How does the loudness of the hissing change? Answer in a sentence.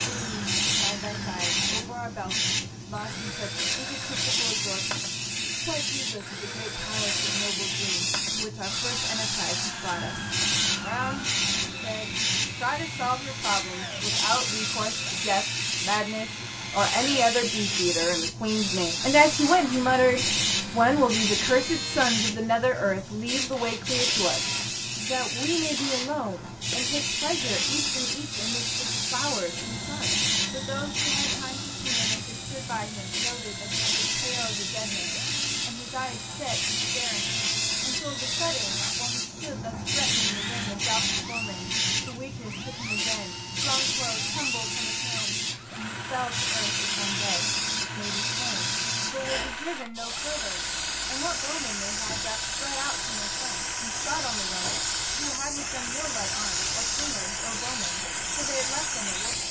The loudness of the hissing stays about the same.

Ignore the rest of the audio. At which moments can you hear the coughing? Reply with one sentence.
The coughing can't be heard in this clip.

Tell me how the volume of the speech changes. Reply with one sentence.
The loudness of the speech goes up, then down.